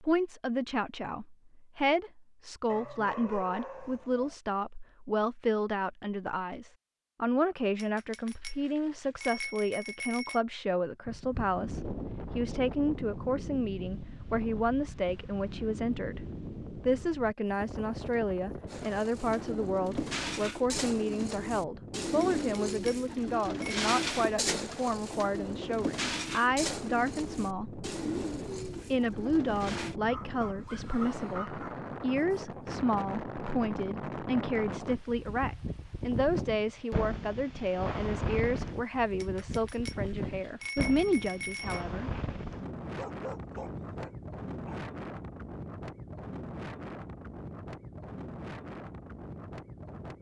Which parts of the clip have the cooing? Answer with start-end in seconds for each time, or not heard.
18.6-29.9.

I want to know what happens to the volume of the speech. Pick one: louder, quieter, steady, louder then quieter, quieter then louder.
steady.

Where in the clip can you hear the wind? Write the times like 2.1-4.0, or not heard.
11.1-50.1.